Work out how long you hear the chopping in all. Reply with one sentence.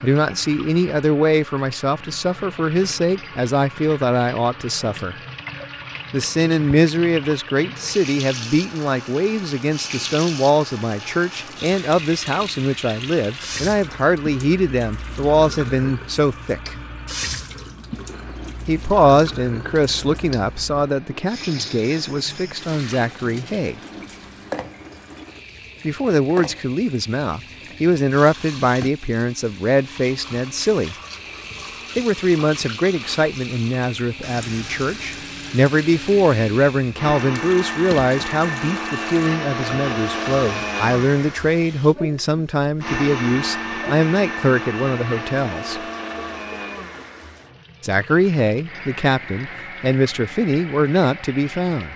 You can't hear the chopping here.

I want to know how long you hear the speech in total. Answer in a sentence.
You can hear the speech for 44 seconds altogether.